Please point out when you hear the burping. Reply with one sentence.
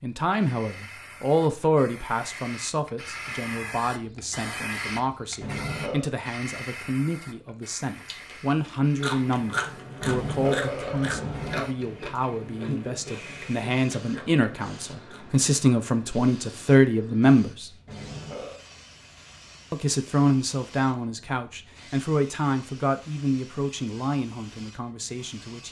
You can hear the burping from 5.4 to 6.1 s, from 10.0 to 11.7 s and from 17.9 to 18.6 s.